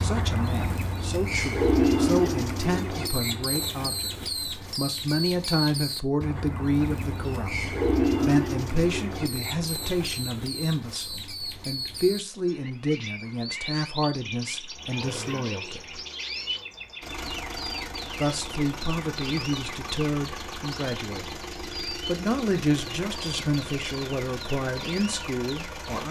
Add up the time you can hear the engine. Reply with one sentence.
You can hear the engine for 11 seconds altogether.